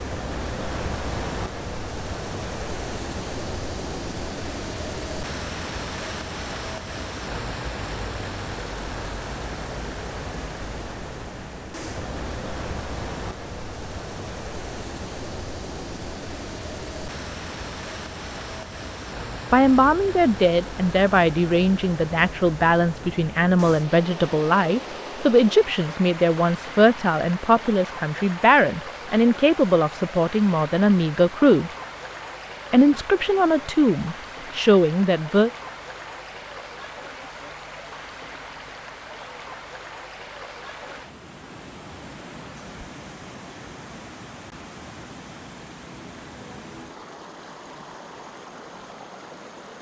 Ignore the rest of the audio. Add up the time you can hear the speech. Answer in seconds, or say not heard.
15 s.